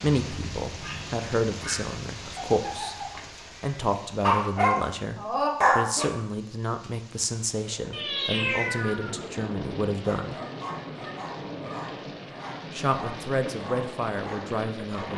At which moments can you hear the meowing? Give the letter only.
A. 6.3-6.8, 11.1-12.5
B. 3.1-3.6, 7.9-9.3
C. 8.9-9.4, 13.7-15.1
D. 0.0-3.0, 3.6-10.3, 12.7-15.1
B.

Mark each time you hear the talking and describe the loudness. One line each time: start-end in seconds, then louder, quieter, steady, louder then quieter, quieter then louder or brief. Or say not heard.
0.0-3.0 brief
3.6-10.3 steady
12.7-15.1 brief.